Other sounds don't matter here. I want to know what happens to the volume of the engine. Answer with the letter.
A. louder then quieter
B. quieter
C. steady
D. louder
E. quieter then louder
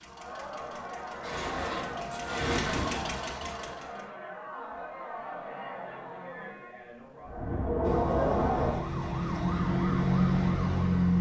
D.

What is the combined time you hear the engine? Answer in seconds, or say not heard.
4 s.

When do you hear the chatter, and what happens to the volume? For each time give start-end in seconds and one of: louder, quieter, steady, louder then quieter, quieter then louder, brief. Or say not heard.
0.0-8.8 louder.